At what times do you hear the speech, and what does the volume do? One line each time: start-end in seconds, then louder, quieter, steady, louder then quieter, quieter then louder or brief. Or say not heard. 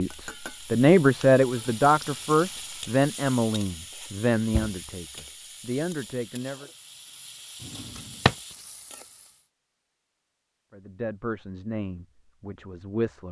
0.0-6.7 quieter
10.7-13.2 brief.